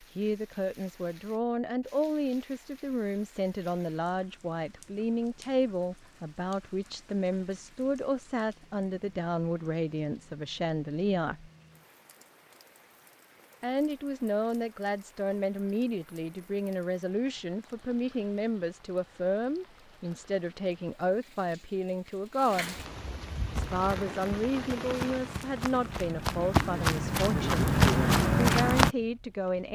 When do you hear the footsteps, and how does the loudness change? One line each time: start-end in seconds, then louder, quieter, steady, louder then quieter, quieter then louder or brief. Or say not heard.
23.6-28.9 louder.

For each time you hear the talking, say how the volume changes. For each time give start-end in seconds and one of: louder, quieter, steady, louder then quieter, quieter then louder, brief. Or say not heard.
0.1-11.5 steady
13.6-22.8 steady
23.5-27.7 steady
28.4-29.7 brief.